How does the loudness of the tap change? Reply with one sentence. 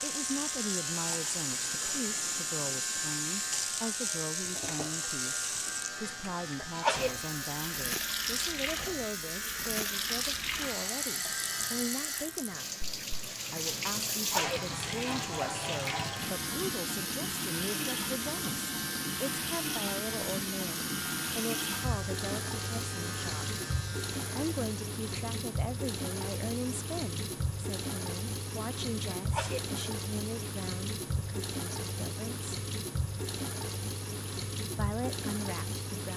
The loudness of the tap stays about the same.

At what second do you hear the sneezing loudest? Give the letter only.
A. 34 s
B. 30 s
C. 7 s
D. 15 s
C.